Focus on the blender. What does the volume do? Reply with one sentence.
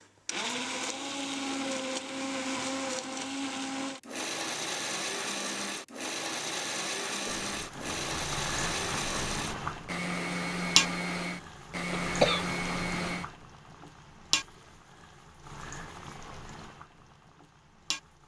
The loudness of the blender stays about the same.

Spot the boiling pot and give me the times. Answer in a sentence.
The boiling pot can be heard from 7.2 to 18.2 s.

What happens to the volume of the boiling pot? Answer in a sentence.
The loudness of the boiling pot goes up, then down.